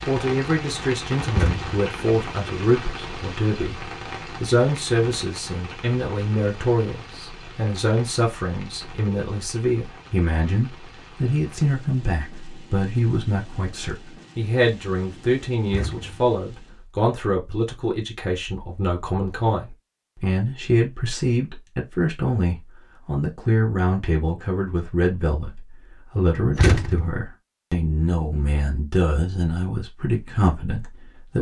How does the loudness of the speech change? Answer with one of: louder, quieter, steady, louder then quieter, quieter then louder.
steady.